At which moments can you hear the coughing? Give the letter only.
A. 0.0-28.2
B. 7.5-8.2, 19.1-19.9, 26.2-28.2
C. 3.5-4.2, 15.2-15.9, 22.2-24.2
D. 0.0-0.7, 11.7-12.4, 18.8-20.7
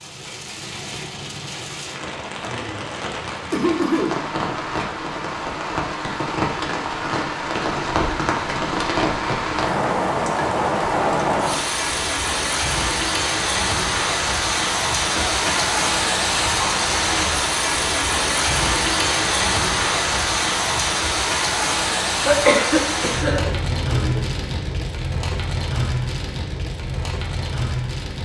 C.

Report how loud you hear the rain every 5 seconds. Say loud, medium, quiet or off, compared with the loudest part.
medium, loud, loud, loud, loud, medium.